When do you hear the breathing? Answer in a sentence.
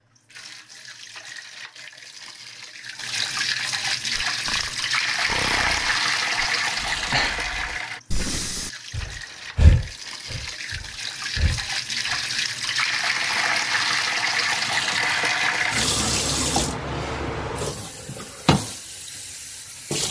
You can hear the breathing from 4.1 to 12.2 s.